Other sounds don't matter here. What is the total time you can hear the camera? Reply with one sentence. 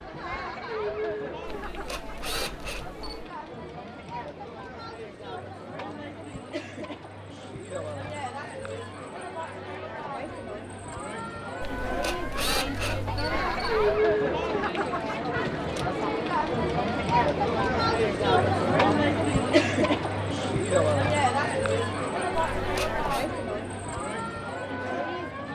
You can hear the camera for 5 seconds altogether.